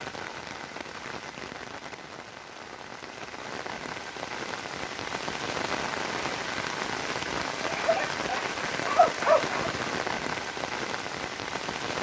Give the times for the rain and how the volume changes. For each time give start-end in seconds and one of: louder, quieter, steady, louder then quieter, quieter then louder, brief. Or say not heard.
0.0-11.9 louder.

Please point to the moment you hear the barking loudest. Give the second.
9 s.